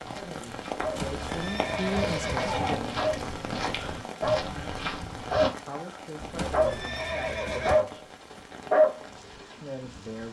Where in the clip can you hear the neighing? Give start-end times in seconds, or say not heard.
0.8-2.8, 6.2-7.8.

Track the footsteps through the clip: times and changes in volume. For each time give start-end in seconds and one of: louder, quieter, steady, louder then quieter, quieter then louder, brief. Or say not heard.
0.0-5.5 louder.